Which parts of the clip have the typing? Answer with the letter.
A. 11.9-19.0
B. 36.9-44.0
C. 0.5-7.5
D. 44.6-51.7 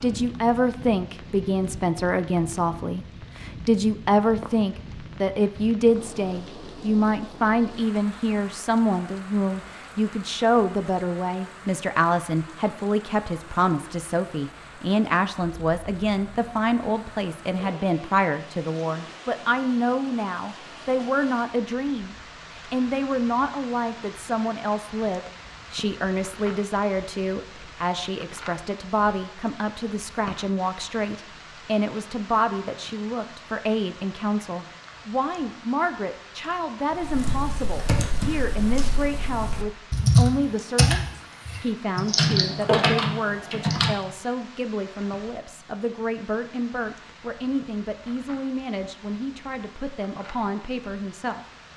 B.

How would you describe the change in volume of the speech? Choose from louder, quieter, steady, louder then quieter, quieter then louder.
quieter.